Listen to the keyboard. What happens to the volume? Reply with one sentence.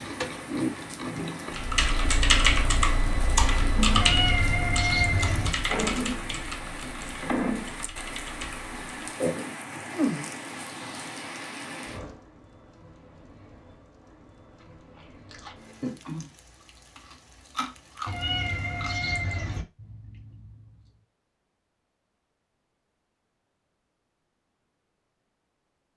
The volume of the keyboard goes down.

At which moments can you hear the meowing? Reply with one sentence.
You can hear the meowing from 4.0 to 5.5 s and from 18.1 to 19.6 s.